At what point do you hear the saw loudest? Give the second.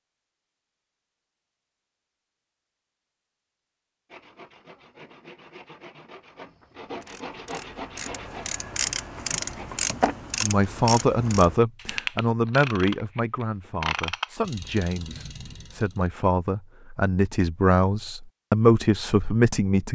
8 s.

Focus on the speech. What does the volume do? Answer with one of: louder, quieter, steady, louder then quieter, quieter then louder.
quieter then louder.